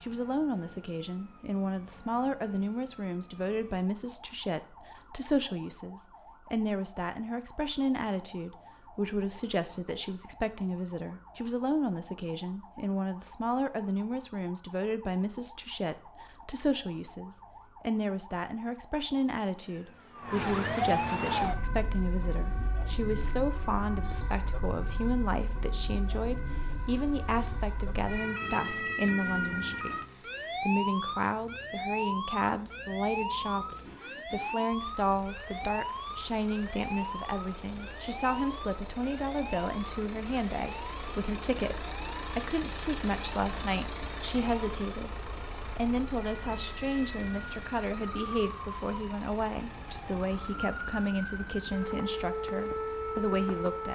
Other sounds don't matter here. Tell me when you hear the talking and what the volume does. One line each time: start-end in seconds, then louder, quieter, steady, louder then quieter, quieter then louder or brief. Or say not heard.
0.0-53.8 steady.